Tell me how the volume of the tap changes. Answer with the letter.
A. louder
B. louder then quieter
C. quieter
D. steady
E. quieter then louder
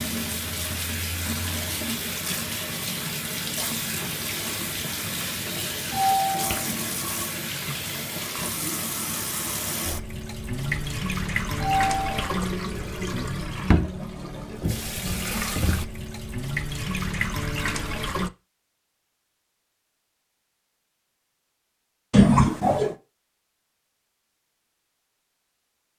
D.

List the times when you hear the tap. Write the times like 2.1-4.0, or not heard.
0.0-18.3.